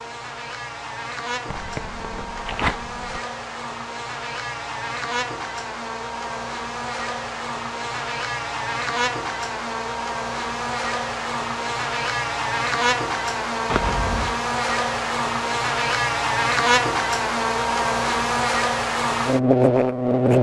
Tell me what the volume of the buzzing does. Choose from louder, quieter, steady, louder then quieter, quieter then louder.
louder.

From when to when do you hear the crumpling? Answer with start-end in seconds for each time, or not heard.
1.4-3.2, 13.7-14.3.